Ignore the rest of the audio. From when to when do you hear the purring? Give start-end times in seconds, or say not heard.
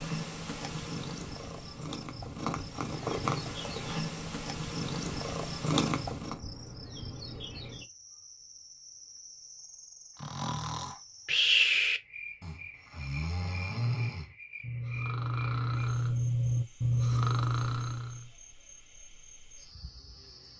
0.0-6.4.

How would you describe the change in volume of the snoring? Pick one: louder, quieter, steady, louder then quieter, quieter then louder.
quieter then louder.